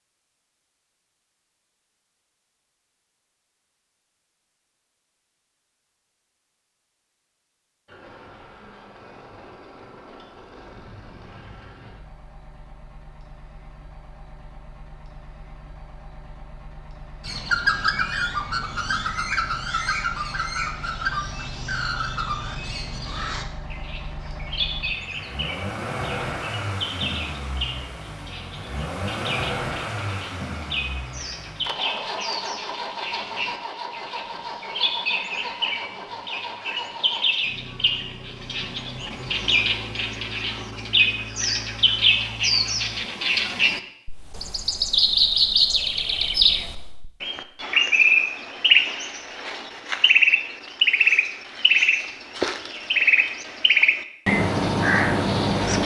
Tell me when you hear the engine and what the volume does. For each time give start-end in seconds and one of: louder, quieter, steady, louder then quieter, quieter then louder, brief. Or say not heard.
7.8-43.2 louder then quieter.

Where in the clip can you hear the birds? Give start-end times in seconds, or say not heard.
17.2-55.8.